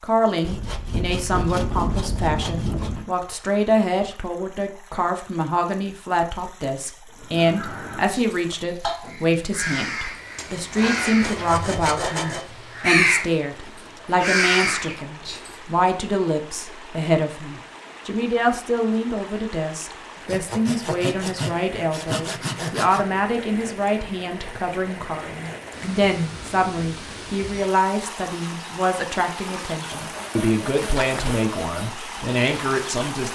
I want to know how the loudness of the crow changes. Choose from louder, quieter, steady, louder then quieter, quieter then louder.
louder.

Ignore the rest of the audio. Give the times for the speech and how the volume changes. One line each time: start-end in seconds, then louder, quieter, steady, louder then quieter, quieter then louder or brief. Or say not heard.
0.0-33.3 steady.